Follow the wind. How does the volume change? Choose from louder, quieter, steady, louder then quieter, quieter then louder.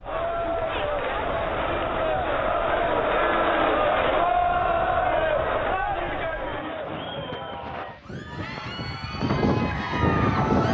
louder.